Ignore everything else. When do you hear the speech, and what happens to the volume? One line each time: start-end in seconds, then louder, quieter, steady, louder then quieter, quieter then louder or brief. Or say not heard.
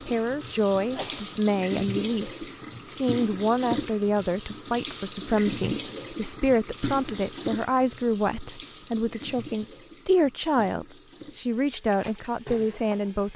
0.1-13.3 steady.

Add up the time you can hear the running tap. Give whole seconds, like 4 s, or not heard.
13 s.